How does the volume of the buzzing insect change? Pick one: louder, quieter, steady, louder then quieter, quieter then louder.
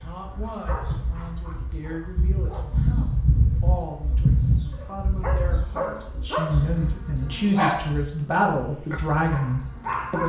louder then quieter.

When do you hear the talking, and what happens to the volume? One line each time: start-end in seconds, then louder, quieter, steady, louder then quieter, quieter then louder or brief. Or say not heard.
0.0-10.2 louder.